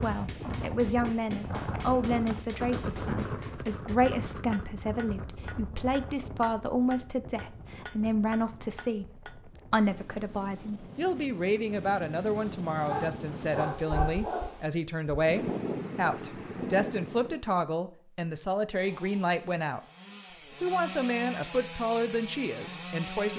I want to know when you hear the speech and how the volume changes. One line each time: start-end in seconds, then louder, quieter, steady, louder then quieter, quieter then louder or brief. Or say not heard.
0.0-19.8 steady
20.6-23.3 brief.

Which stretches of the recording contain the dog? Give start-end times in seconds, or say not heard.
12.8-14.7.